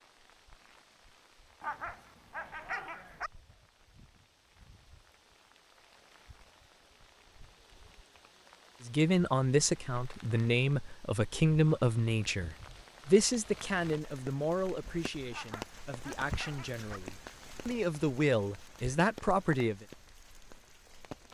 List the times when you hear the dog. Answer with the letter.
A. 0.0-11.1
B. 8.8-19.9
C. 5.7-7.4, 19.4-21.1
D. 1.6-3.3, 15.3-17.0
D.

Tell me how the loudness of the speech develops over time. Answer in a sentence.
The loudness of the speech goes down, then up.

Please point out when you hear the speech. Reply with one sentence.
The speech can be heard from 8.8 to 19.9 s.